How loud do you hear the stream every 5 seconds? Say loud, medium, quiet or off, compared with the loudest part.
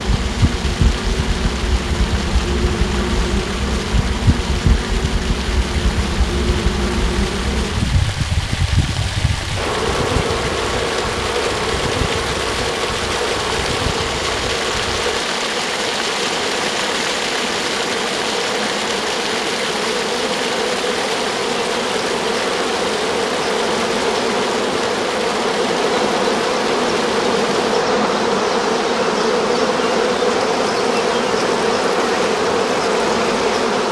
medium, medium, loud, loud, loud, medium, medium.